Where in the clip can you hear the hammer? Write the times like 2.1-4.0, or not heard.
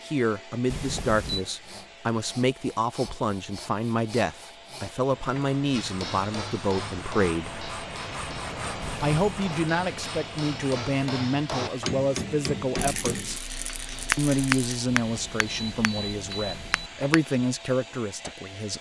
5.7-17.4.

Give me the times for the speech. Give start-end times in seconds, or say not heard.
0.0-7.5, 9.0-13.4, 14.2-18.7.